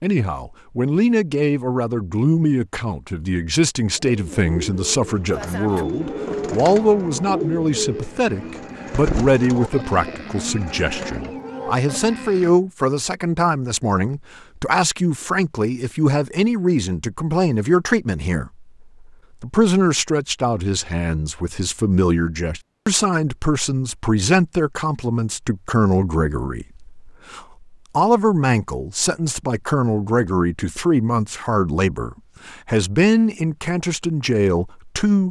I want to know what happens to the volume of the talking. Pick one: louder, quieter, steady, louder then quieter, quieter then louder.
steady.